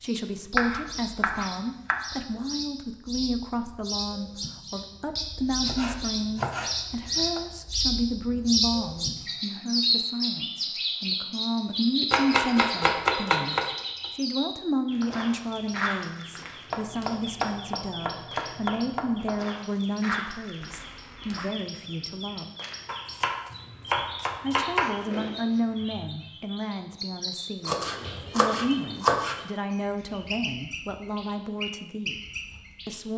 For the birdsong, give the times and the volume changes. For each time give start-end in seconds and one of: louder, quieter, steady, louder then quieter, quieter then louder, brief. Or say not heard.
0.0-33.0 louder then quieter.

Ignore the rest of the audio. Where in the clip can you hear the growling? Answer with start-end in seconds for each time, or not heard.
20.6-21.6.